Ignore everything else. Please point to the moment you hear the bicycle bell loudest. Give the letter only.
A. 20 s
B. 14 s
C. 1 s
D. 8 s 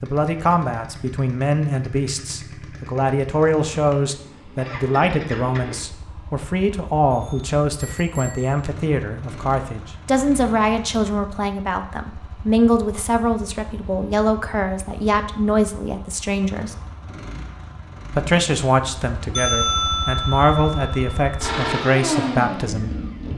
A.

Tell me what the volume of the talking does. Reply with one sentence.
The loudness of the talking stays about the same.